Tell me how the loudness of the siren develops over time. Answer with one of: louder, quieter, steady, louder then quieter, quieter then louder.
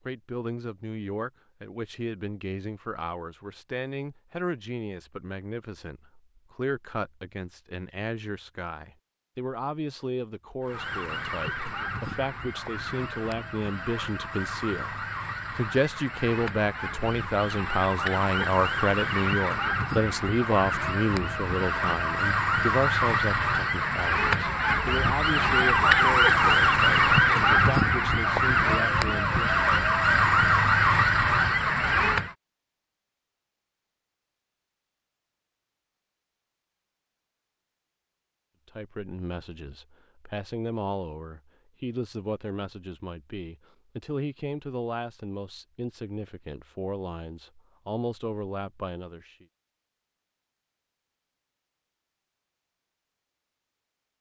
louder.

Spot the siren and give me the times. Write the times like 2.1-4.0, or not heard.
10.6-32.4.